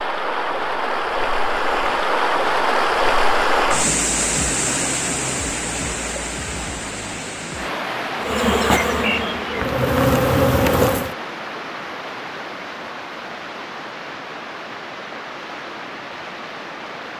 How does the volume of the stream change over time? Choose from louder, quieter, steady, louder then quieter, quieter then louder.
quieter.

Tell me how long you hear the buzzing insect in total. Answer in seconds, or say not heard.
3 s.